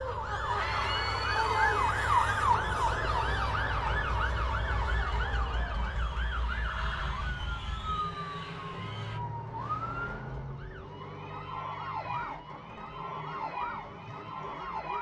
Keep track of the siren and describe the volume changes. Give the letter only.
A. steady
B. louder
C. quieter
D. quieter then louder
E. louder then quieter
C.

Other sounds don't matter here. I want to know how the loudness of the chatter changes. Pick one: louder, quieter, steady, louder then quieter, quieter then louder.
quieter.